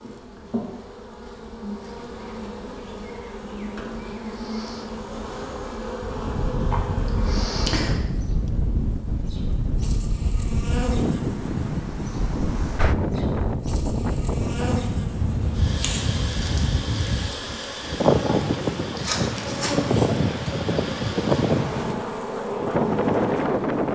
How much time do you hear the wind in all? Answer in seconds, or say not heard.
18 s.